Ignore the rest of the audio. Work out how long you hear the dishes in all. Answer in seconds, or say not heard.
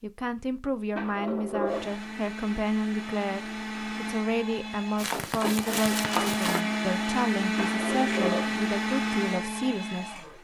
not heard.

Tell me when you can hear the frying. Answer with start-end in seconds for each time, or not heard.
5.0-6.7.